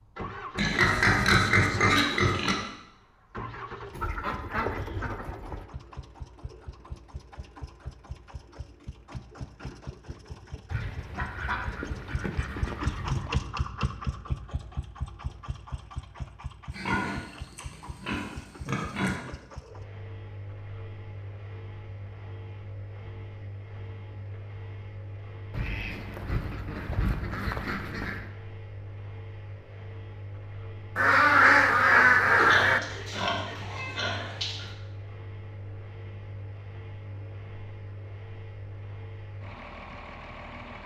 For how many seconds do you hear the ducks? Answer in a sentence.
You can hear the ducks for 9 seconds altogether.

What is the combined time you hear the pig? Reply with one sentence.
You can hear the pig for 7 seconds altogether.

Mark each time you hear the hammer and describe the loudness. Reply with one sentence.
The hammer can't be heard in this clip.